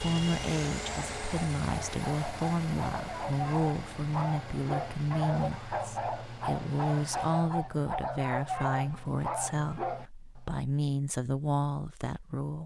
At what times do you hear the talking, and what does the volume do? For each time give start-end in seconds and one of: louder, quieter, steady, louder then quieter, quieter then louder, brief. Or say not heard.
0.0-12.6 steady.